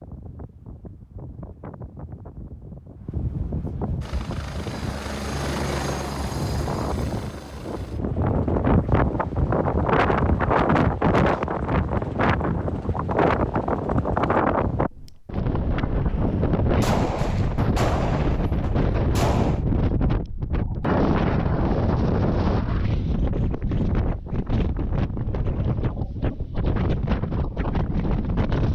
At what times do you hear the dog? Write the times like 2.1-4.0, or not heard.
not heard.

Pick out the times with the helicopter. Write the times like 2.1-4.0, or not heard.
4.0-14.4.